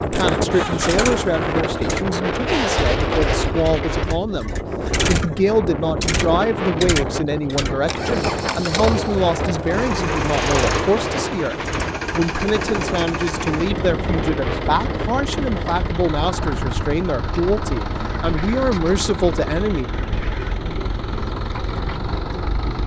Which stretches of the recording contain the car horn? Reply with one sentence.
The car horn can't be heard in this clip.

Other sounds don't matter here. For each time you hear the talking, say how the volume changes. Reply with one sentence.
The talking can be heard from 0.0 to 19.9 s, at a steady volume.